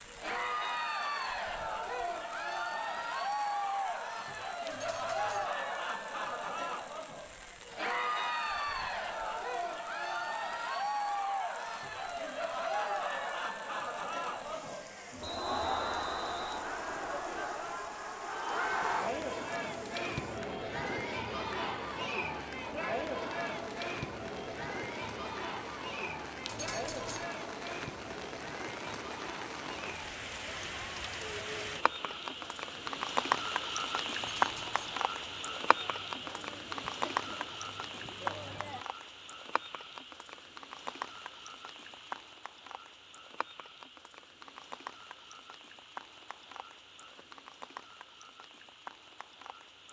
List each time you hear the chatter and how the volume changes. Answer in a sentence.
You can hear the chatter from 0.1 to 38.9 s, getting quieter.